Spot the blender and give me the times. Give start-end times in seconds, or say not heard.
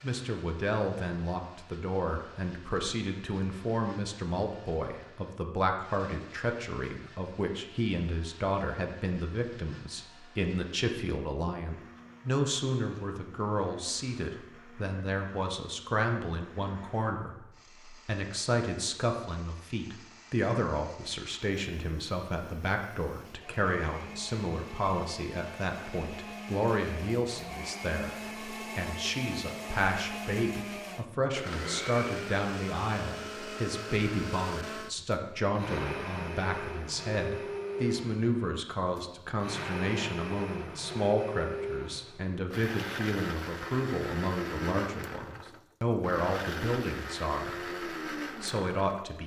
0.0-49.1.